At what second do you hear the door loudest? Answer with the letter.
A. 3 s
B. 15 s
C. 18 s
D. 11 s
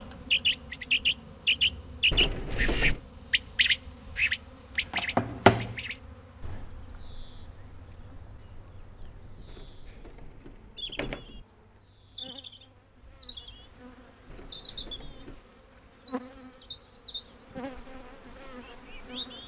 A.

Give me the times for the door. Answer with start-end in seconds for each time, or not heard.
2.1-3.0, 9.4-11.4, 14.2-15.5.